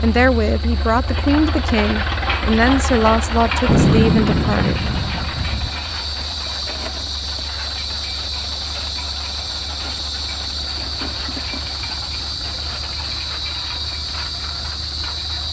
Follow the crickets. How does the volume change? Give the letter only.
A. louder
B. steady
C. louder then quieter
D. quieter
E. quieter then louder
A.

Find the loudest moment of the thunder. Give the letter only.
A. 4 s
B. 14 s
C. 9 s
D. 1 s
A.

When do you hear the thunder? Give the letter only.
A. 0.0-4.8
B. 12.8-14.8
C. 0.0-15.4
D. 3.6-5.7
D.